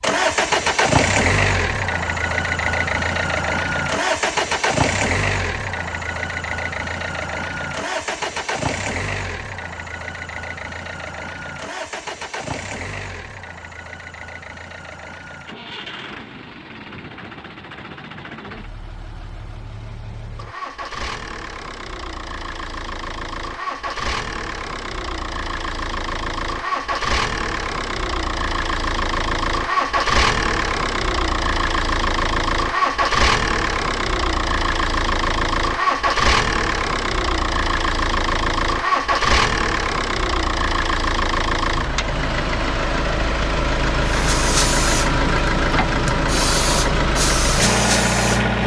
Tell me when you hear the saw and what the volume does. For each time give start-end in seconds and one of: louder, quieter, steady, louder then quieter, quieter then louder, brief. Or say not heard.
not heard.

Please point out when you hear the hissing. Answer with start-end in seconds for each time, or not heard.
44.0-48.5.